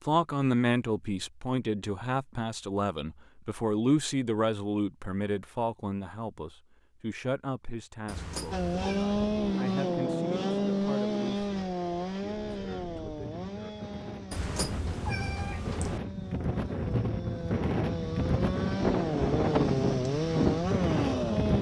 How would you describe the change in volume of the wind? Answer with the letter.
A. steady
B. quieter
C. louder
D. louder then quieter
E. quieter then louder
E.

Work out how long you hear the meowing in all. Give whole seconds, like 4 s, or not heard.
3 s.